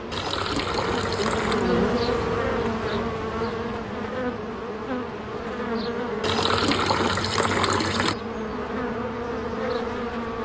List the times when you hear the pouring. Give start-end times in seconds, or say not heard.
0.1-1.6, 6.2-8.2.